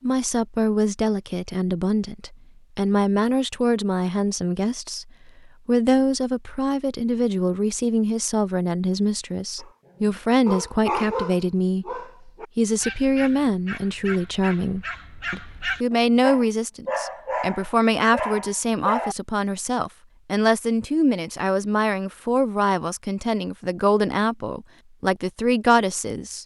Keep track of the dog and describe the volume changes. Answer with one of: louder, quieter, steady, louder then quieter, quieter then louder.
quieter then louder.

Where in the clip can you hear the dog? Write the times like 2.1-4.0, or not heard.
9.6-19.1.